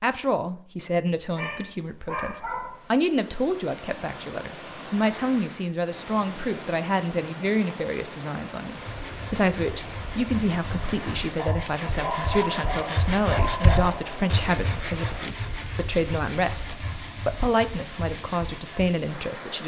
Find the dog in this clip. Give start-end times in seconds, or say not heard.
1.4-2.9, 11.3-14.2.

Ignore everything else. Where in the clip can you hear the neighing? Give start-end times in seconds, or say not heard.
not heard.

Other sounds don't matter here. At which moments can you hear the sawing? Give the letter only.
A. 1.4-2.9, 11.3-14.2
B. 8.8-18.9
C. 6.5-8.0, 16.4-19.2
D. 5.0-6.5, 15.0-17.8
B.